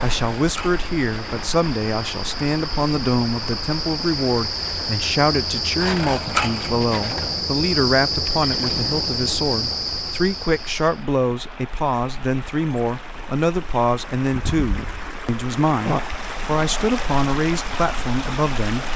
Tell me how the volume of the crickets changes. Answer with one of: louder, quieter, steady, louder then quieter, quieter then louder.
louder.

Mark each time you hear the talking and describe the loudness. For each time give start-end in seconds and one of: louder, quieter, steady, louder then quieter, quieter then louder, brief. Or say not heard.
0.0-18.9 steady.